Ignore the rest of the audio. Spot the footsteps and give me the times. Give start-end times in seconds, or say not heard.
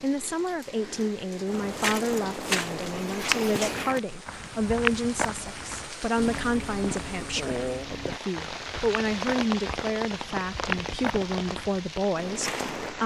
1.4-12.9.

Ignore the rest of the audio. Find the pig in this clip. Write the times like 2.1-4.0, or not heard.
not heard.